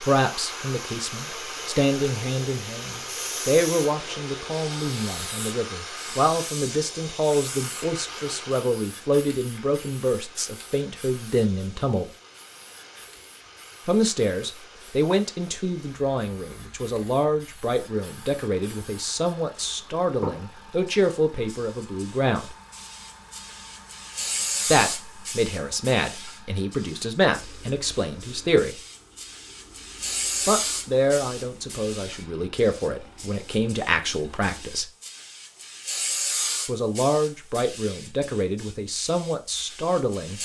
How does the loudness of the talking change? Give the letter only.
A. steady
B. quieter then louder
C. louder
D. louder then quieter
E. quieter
A.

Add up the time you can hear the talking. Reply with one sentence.
The talking can be heard for 33 seconds in total.